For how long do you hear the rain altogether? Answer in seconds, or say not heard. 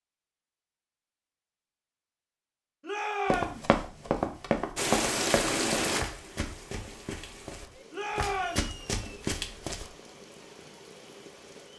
7 s.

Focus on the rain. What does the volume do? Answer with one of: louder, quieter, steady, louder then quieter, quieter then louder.
quieter.